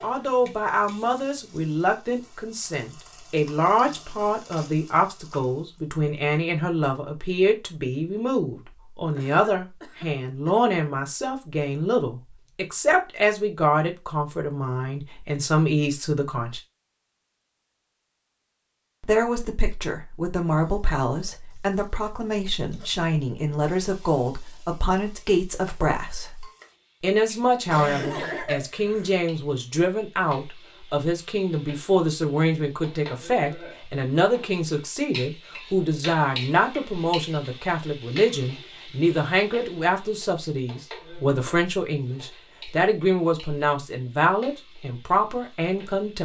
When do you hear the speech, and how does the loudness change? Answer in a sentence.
The speech can be heard from 0.0 to 16.6 s, at a steady volume; and from 19.0 to 46.2 s, at a steady volume.